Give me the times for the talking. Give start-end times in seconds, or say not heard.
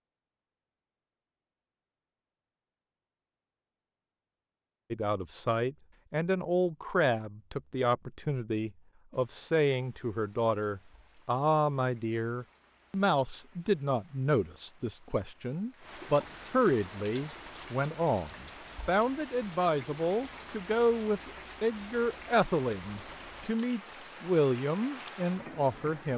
4.9-26.1.